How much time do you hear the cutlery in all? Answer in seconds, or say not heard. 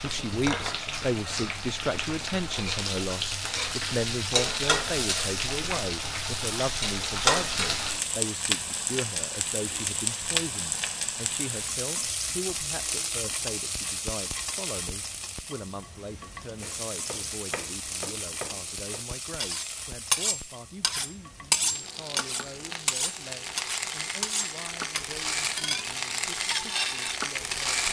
8 s.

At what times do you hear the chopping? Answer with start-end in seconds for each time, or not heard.
16.6-19.1.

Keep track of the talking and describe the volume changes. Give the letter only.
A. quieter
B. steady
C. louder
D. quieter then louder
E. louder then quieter
A.